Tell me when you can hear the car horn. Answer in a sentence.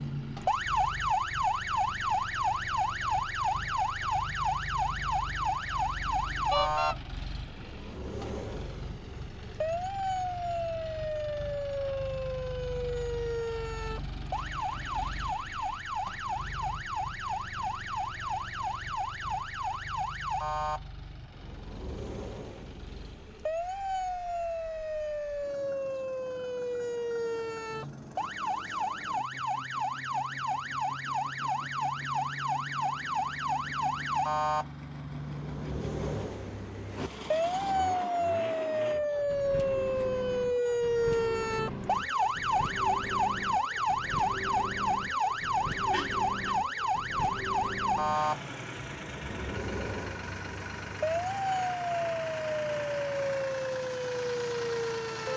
You can hear the car horn from 6.5 to 7.0 s and from 45.9 to 46.5 s.